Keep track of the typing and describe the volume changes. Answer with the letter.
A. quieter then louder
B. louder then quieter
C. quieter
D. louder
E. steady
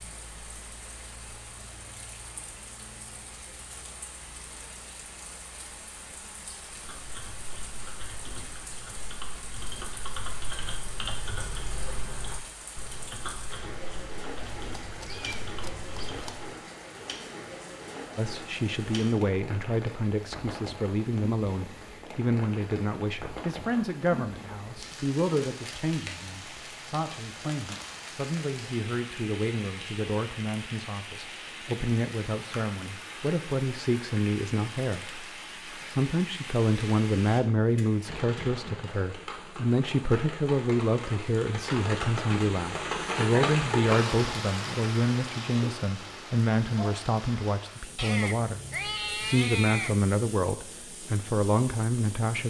B.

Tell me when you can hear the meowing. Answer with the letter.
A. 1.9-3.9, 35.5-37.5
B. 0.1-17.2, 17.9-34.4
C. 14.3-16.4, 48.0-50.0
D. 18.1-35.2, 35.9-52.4
C.